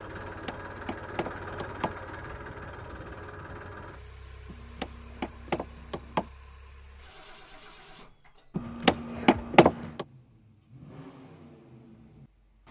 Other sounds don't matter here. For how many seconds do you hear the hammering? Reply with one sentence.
You can hear the hammering for 5 seconds altogether.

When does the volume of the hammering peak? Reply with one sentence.
The volume of the hammering peaks at 10 seconds.